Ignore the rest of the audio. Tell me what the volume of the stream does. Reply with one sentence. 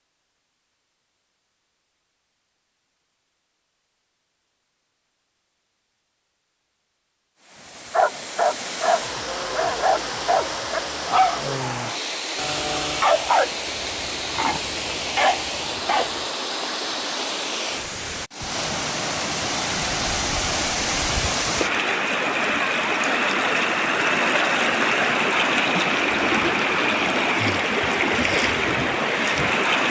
The loudness of the stream goes up.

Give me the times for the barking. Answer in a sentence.
You can hear the barking from 7.9 to 16.2 s.